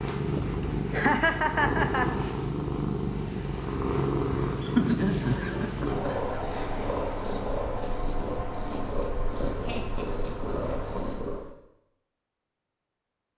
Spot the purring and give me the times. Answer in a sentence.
The purring can be heard from 0.0 to 11.5 s.